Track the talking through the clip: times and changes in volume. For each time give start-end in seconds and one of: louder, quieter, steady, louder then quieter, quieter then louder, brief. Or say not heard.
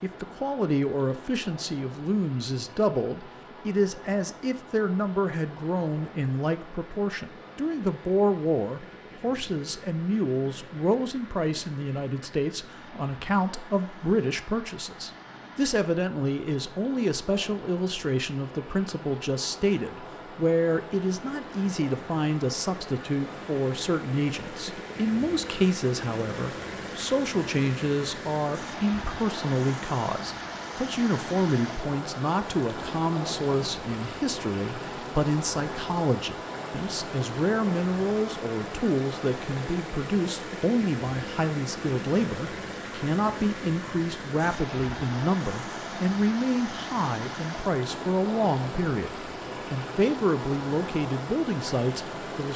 0.0-52.5 steady.